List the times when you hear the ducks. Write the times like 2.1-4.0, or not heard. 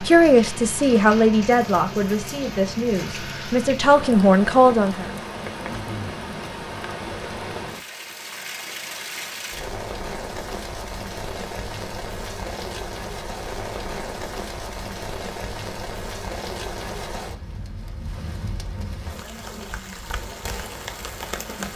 not heard.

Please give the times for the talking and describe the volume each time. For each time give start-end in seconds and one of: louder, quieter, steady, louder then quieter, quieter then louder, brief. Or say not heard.
0.0-5.1 quieter then louder.